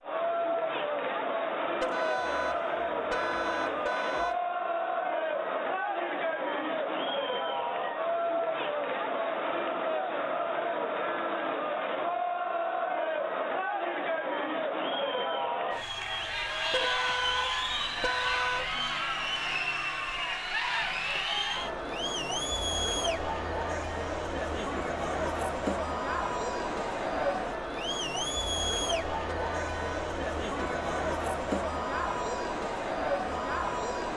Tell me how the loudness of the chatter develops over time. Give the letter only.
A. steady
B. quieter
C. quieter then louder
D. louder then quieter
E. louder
A.